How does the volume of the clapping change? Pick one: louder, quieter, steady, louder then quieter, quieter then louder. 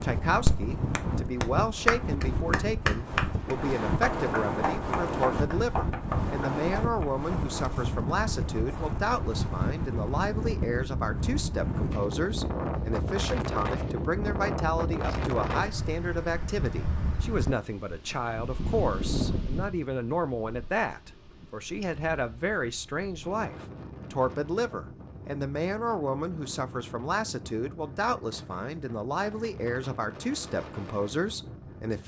quieter.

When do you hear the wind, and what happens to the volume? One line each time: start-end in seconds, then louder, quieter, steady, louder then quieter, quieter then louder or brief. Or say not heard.
0.0-32.0 quieter.